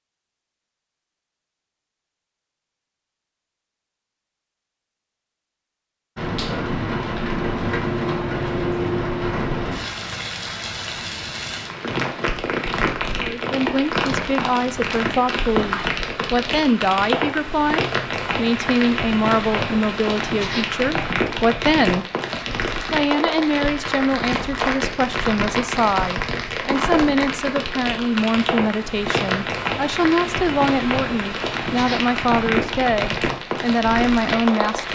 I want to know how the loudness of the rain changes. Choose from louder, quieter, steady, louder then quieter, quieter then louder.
steady.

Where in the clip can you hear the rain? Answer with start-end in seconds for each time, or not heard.
6.2-34.9.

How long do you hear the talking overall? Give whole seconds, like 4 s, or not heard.
21 s.